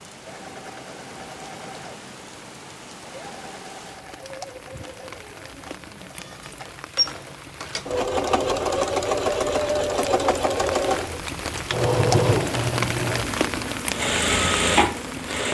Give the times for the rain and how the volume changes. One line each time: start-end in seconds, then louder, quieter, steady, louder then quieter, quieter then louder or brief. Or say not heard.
0.0-15.4 louder.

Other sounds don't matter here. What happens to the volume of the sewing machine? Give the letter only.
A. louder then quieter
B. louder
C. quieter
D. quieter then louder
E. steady
B.